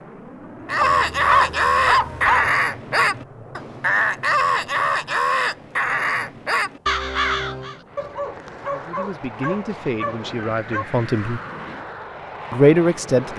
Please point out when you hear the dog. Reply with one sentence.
You can hear the dog from 0.8 to 2.5 s and from 8.0 to 10.8 s.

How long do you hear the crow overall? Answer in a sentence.
The crow can be heard for 7 seconds in total.